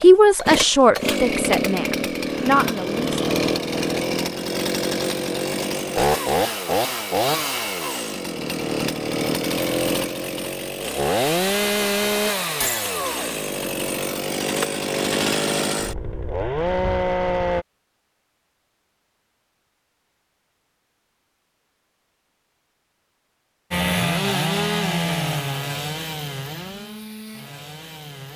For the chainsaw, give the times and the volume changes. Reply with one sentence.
The chainsaw can be heard from 0.0 to 17.6 s, at a steady volume; and from 23.7 to 28.3 s, getting quieter.